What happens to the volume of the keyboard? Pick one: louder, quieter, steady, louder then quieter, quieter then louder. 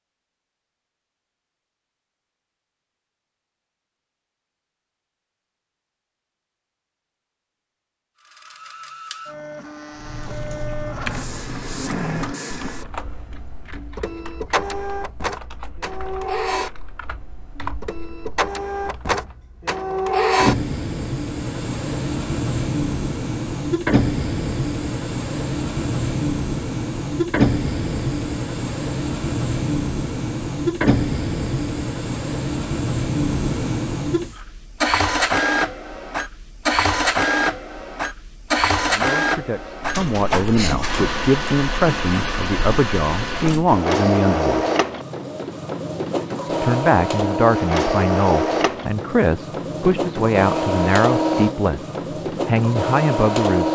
quieter then louder.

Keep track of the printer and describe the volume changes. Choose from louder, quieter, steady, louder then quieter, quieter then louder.
louder.